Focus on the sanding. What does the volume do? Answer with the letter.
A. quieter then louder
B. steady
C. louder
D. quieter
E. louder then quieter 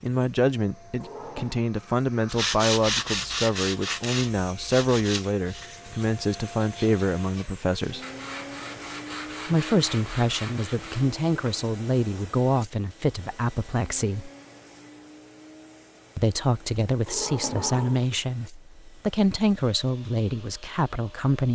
A.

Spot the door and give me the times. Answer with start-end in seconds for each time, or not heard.
1.0-1.6, 17.1-18.1.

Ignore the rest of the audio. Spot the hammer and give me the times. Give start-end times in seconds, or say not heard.
not heard.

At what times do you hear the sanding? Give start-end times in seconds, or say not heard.
2.2-11.6.